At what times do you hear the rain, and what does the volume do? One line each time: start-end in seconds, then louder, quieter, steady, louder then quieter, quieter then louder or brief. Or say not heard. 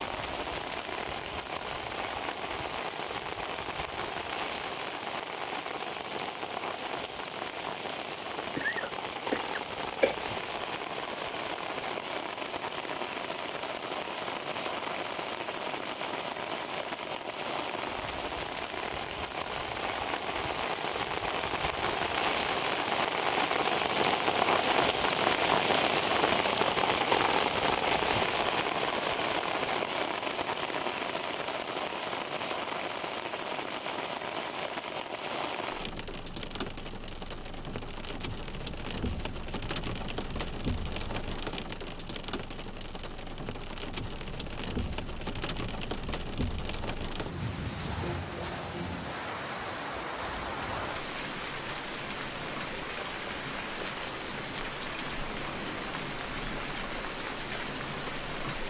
0.0-58.6 louder then quieter.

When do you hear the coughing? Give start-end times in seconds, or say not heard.
8.6-10.2.